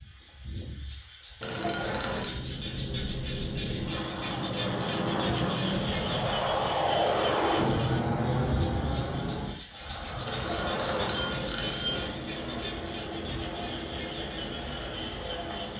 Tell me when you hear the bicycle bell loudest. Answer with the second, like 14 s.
12 s.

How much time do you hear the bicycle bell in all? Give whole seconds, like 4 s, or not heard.
3 s.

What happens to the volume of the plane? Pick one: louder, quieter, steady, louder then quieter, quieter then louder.
louder then quieter.